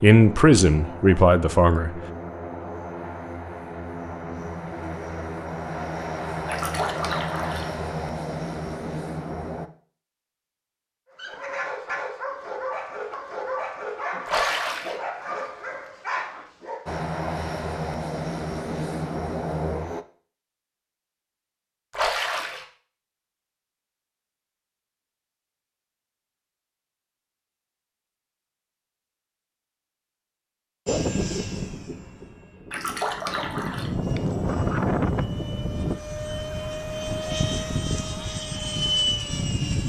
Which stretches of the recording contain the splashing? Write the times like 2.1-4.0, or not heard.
6.5-7.7, 14.2-15.0, 21.9-22.6, 32.7-33.9.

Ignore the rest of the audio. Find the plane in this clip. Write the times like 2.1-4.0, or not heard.
0.0-9.7, 16.9-20.1, 30.9-39.8.